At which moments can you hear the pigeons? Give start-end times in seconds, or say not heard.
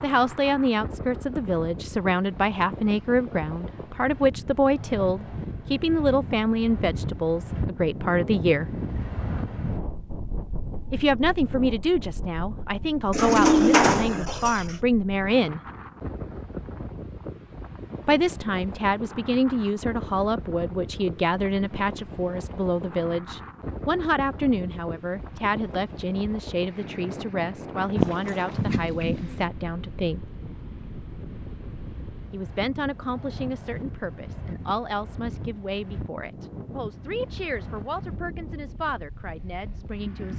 13.1-14.8, 27.9-29.4.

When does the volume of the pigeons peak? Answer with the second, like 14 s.
14 s.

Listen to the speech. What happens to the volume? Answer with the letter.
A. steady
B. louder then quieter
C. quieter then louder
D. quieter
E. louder
D.